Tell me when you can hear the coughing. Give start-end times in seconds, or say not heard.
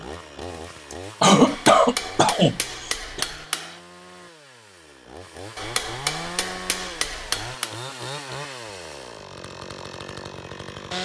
1.2-3.2.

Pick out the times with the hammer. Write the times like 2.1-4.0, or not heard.
1.4-3.8, 5.5-7.8.